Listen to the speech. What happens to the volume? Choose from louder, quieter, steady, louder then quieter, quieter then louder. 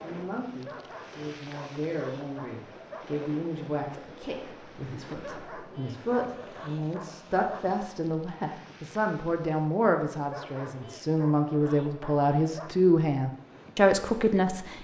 louder.